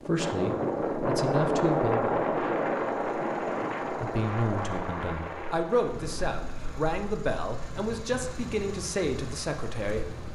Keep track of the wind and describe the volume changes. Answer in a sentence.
The loudness of the wind goes down.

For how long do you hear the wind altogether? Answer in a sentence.
The wind can be heard for 10 seconds in total.